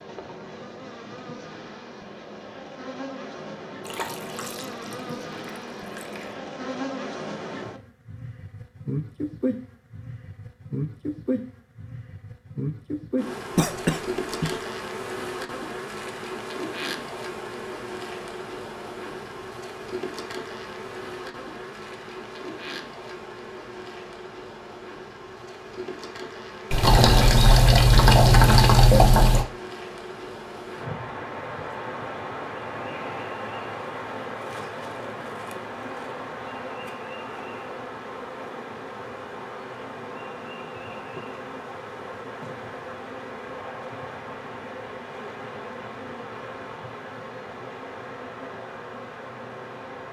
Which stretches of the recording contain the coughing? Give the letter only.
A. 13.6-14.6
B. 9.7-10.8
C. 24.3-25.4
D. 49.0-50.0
A.